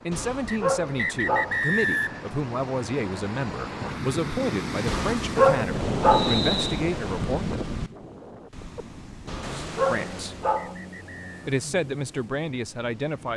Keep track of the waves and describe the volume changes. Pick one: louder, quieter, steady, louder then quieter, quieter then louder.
louder then quieter.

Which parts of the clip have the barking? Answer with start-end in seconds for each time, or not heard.
0.1-1.6, 4.8-6.4, 9.2-10.8.